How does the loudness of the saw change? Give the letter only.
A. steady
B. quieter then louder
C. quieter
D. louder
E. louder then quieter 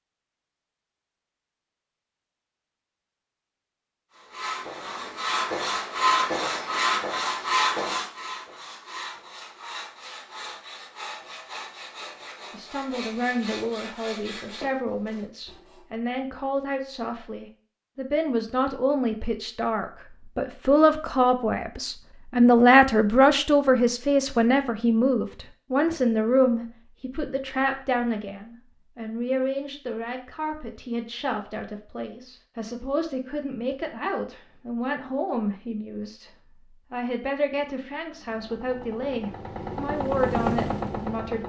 C.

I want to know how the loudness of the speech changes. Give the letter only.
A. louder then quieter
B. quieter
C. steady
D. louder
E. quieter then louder
A.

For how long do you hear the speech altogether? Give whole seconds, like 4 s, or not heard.
28 s.